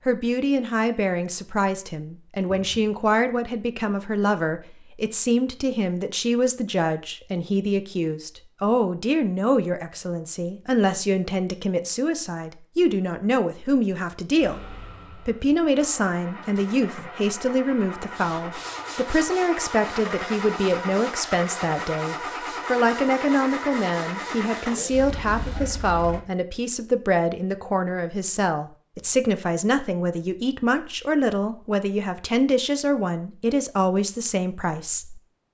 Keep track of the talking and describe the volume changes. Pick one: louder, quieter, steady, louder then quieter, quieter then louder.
steady.